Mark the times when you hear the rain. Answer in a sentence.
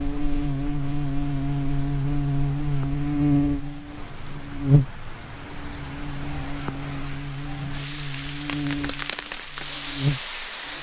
The rain can be heard from 0.0 to 10.7 s.